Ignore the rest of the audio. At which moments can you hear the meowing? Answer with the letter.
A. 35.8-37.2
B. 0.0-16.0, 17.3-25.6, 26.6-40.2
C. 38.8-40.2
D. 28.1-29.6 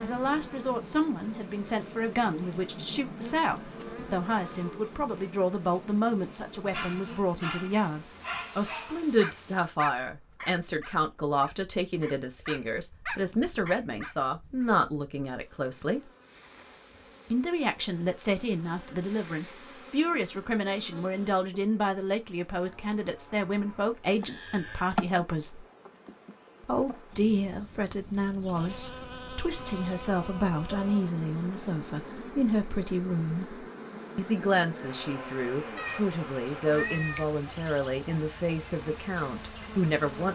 A.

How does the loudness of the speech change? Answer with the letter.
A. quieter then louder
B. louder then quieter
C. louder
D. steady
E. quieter
D.